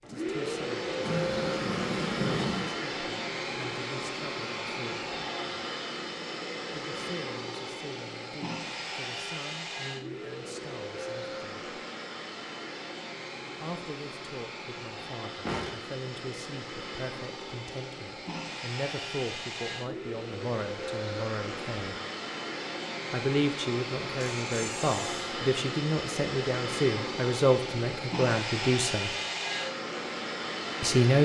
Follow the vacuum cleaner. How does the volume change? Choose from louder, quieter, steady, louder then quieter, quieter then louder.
quieter then louder.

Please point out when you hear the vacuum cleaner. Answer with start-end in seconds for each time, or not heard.
0.0-31.1.